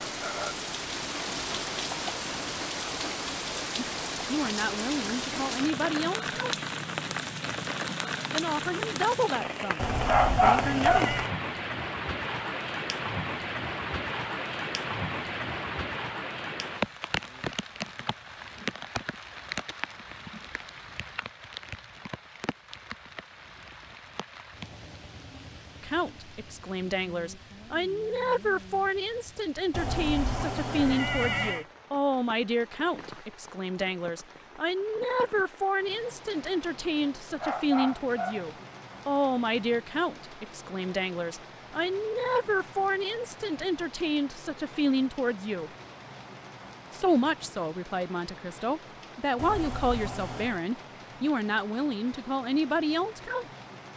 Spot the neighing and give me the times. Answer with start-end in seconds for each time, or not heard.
9.8-11.3, 29.7-31.6, 49.4-50.6.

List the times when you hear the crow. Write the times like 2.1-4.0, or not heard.
not heard.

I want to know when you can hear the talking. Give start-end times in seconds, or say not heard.
3.8-6.5, 8.3-11.1, 25.8-45.7, 46.9-53.5.